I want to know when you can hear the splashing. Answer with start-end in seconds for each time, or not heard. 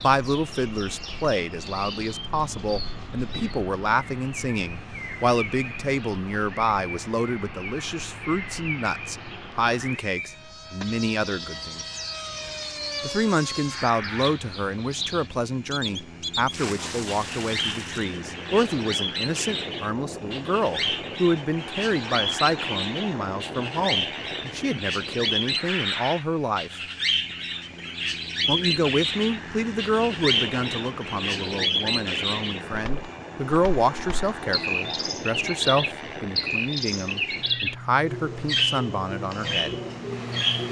16.5-18.1.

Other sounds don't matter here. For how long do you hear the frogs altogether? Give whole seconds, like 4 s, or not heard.
not heard.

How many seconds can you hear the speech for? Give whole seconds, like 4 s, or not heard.
37 s.